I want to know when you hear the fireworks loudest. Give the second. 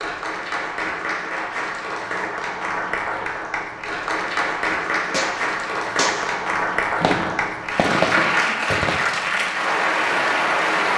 8 s.